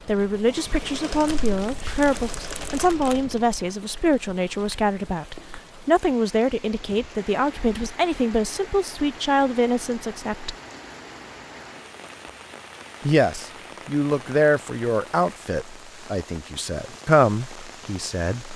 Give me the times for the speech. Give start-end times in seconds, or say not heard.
0.1-10.6, 13.0-18.5.